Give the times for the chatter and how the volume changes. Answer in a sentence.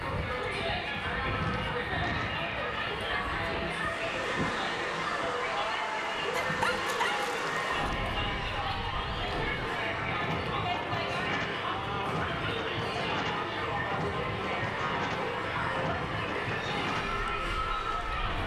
The chatter can be heard from 0.0 to 18.4 s, at a steady volume.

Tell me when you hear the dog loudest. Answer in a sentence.
The volume of the dog peaks at 7 seconds.